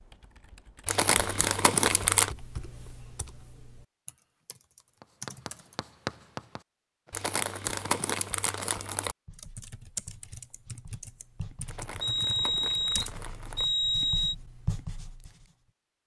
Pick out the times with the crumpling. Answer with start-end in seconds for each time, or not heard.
0.8-2.4, 7.1-9.2, 11.7-13.7.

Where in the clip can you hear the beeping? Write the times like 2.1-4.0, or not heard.
12.0-14.3.